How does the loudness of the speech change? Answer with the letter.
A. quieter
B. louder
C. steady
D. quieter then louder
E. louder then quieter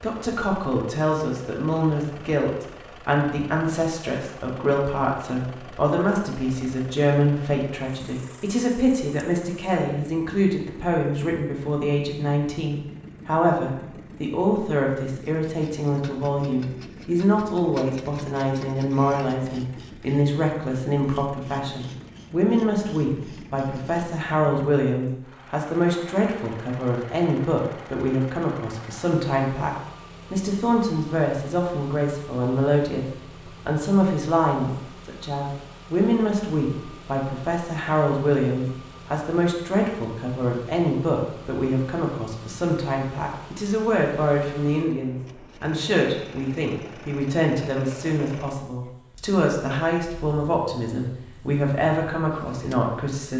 C.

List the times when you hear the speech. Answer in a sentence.
The speech can be heard from 0.0 to 33.0 s and from 33.6 to 53.3 s.